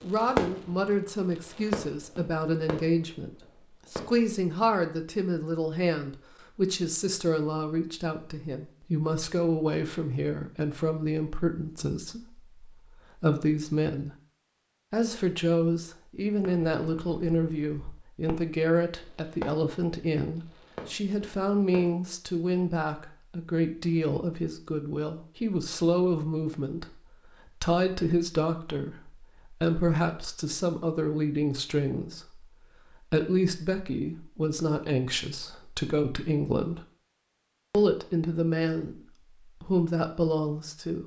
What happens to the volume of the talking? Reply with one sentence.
The volume of the talking stays about the same.